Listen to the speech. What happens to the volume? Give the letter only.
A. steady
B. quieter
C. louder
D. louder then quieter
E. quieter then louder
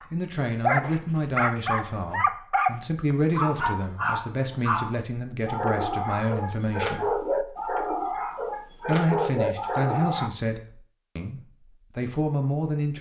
A.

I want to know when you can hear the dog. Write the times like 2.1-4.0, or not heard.
0.0-10.3.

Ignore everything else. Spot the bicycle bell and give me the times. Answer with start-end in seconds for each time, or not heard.
not heard.